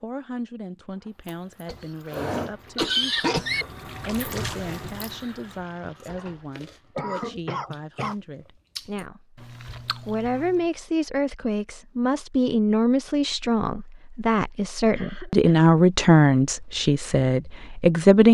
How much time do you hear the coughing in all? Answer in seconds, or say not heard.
4 s.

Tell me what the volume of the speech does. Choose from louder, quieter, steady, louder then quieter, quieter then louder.
louder.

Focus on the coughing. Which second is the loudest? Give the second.
3 s.